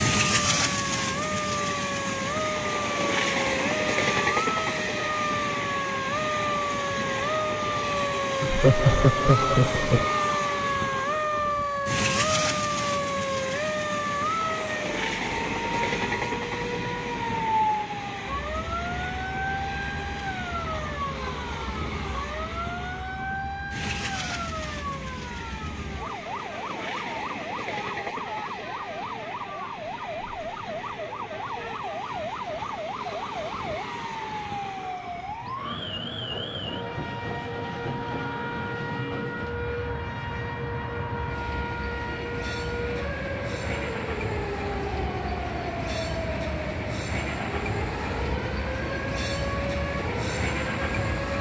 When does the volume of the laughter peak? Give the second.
9 s.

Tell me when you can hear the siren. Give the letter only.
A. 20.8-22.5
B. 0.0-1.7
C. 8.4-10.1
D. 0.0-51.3
D.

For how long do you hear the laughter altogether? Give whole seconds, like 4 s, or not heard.
2 s.